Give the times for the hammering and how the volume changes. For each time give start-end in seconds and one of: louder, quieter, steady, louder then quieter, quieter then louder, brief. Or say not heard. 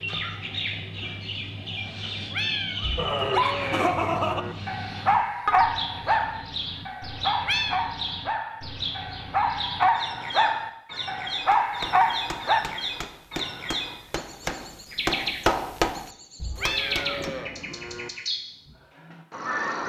11.5-17.2 louder then quieter.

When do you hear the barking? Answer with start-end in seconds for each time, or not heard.
3.0-12.6.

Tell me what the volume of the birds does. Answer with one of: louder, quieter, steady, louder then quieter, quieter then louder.
steady.